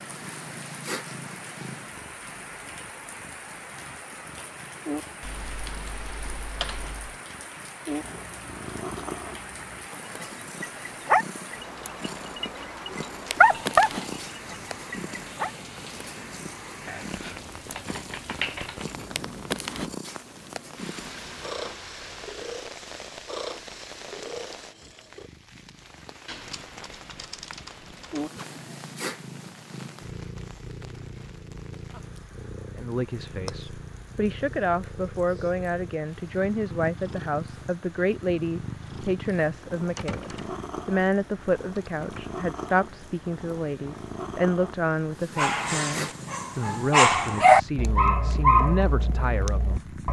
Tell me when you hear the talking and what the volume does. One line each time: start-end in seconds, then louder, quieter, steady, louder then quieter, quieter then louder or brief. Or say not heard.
32.8-49.8 steady.